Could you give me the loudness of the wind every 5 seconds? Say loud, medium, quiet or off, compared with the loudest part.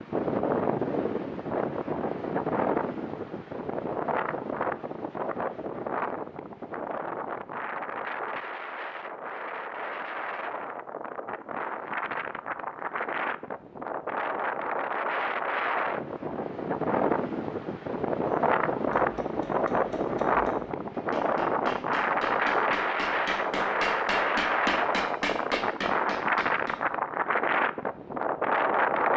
loud, medium, medium, loud, loud, loud.